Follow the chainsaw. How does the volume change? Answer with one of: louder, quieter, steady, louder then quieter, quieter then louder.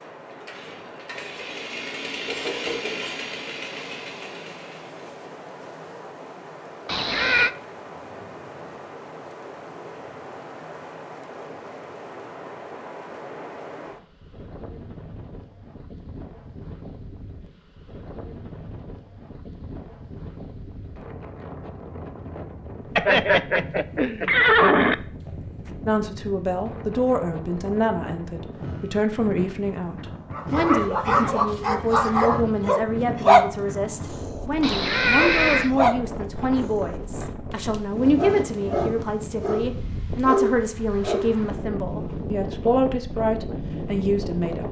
louder then quieter.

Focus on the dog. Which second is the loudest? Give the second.
33 s.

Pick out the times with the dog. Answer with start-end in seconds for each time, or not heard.
30.3-41.4.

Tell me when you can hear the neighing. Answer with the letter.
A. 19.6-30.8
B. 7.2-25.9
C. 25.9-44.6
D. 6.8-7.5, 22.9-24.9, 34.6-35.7
D.